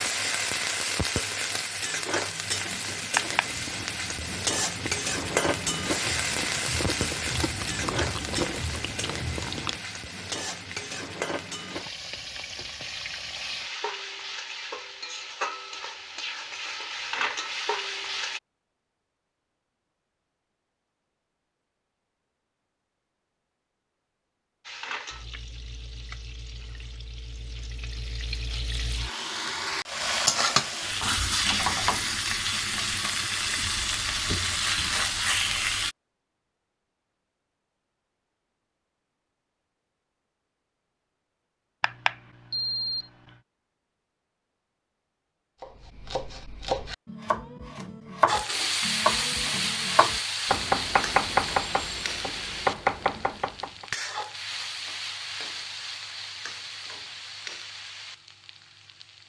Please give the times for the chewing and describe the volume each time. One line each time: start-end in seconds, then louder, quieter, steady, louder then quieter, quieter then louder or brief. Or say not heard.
3.5-9.8 louder.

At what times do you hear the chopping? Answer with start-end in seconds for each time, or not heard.
45.6-53.9.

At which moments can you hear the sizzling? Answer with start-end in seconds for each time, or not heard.
0.0-18.4, 24.6-36.0, 48.2-59.2.